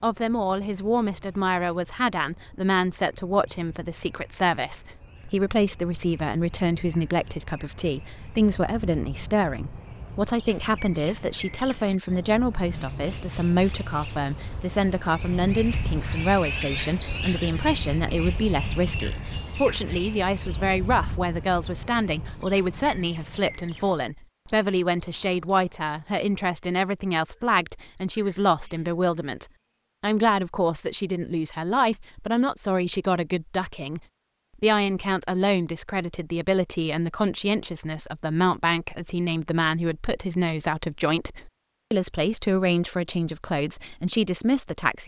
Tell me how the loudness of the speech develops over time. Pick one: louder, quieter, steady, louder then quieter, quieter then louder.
steady.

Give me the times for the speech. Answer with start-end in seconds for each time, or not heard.
0.0-34.0, 34.6-45.0.